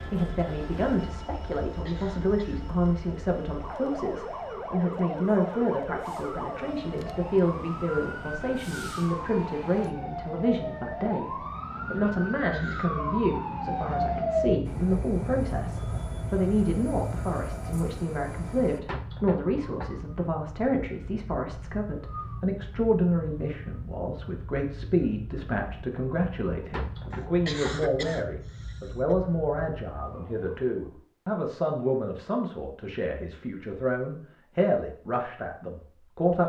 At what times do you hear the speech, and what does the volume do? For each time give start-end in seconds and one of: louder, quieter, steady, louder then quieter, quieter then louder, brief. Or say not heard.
0.1-36.4 steady.